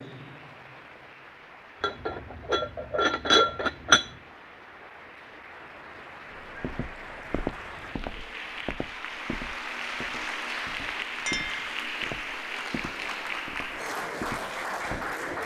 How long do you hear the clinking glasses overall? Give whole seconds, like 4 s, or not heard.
3 s.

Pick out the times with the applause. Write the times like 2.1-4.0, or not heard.
0.0-15.4.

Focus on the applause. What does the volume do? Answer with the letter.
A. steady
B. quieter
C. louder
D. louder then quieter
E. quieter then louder
C.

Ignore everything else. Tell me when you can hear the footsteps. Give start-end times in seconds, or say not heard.
6.5-15.2.